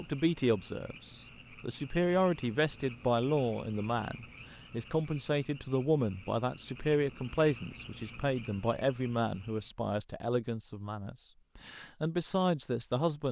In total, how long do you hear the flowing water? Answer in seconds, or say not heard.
not heard.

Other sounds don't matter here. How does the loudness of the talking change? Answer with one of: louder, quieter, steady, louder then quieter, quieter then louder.
steady.